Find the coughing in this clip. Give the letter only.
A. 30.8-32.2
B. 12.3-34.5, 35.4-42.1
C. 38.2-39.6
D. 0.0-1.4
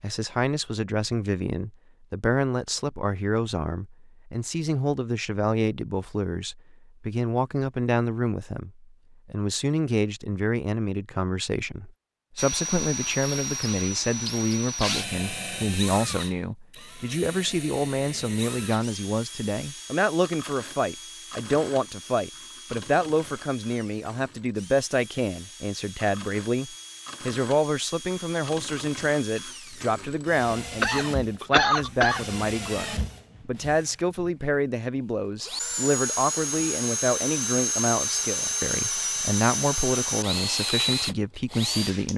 A.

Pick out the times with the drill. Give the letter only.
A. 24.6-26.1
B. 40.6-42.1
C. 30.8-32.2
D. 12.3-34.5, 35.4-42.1
D.